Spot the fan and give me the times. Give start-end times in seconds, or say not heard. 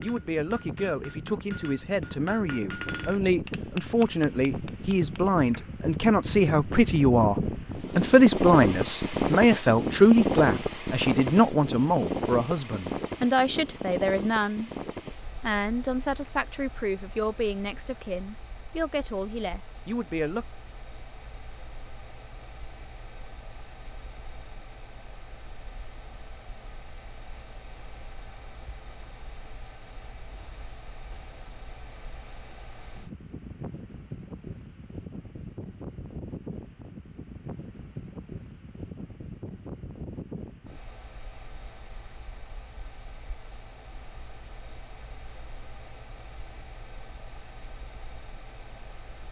0.0-49.2.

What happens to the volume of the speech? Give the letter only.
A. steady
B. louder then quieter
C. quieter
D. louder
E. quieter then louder
B.